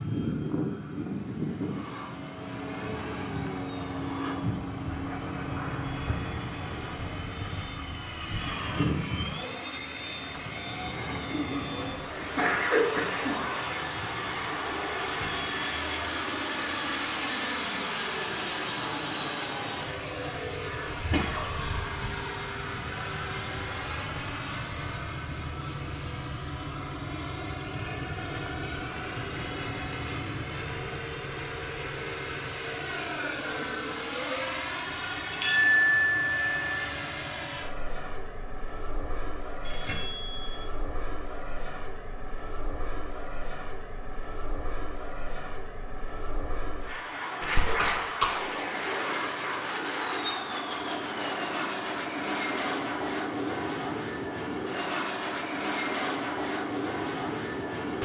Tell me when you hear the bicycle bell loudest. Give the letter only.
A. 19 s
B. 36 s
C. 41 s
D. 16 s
B.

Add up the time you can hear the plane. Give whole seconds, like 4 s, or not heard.
58 s.